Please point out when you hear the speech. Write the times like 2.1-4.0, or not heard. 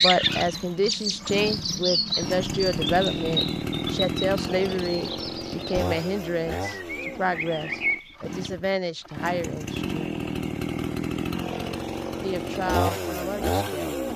0.0-10.0, 12.2-13.9.